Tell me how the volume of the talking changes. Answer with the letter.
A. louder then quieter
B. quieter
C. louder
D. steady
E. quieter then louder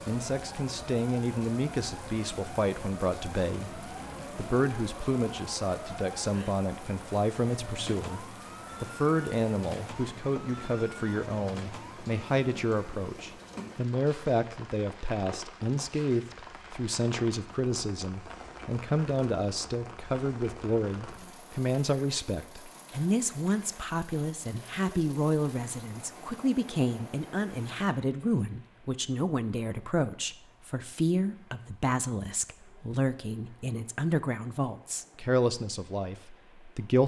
D.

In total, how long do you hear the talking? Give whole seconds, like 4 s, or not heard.
37 s.